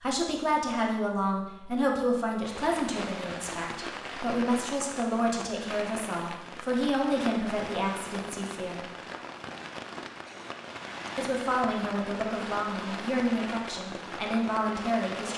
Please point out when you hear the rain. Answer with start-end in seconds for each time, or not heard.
2.5-15.3.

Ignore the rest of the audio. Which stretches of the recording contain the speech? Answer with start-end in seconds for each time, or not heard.
0.0-8.8, 11.2-15.3.